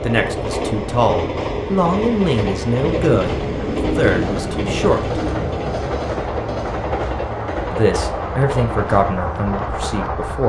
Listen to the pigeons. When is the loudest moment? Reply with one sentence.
The loudest moment of the pigeons is at 4 seconds.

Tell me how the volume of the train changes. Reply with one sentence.
The volume of the train stays about the same.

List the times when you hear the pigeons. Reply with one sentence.
The pigeons can be heard from 2.8 to 5.6 s.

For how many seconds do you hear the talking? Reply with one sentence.
The talking can be heard for 8 seconds in total.